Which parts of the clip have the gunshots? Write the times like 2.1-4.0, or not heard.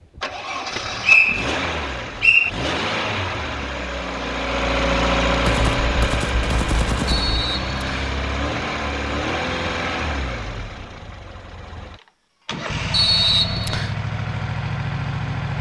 5.5-7.5.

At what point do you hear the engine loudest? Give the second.
5 s.